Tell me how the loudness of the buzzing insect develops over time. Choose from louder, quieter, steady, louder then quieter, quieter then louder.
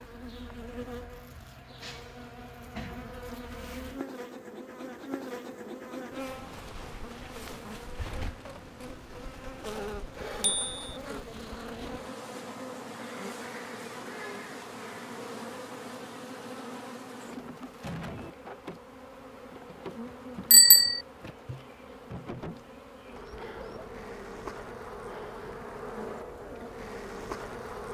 steady.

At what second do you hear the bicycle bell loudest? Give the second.
21 s.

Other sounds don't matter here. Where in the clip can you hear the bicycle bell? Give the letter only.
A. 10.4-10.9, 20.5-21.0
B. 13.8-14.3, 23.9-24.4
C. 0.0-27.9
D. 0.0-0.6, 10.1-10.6
A.